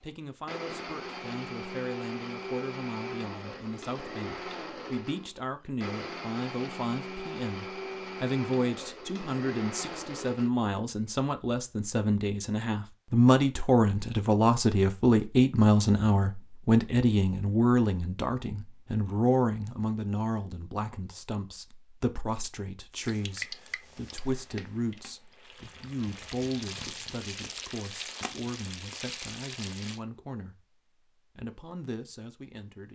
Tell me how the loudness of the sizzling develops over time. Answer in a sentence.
The volume of the sizzling goes down, then up.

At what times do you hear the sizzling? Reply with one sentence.
The sizzling can be heard from 22.9 to 30.0 s.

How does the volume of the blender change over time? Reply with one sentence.
The loudness of the blender stays about the same.